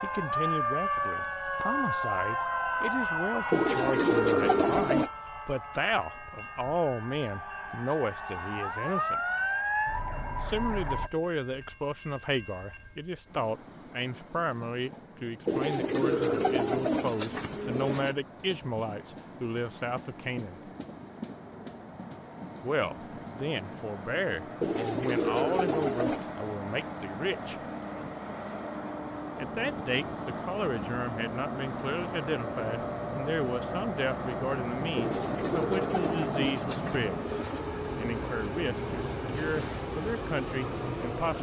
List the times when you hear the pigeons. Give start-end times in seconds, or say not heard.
3.5-5.1, 15.4-18.2, 24.6-26.3, 35.0-37.7.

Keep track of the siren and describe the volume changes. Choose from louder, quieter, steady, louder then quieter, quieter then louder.
quieter then louder.